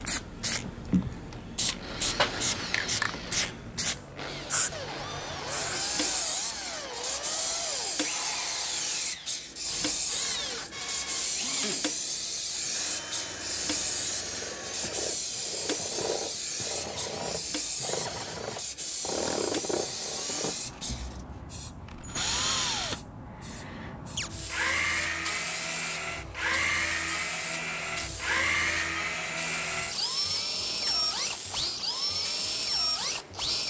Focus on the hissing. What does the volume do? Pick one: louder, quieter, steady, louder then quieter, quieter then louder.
quieter.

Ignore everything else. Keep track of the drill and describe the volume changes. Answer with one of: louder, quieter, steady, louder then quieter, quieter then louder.
louder.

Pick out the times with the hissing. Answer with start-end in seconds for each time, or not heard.
0.0-33.6.